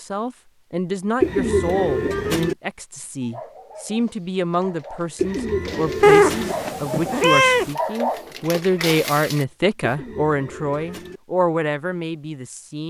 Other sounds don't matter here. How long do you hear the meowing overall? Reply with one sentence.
You can hear the meowing for 2 seconds altogether.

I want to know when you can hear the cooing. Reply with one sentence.
The cooing can be heard from 1.2 to 2.5 s, from 5.2 to 6.5 s and from 9.8 to 11.2 s.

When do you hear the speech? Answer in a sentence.
The speech can be heard from 0.0 to 12.8 s.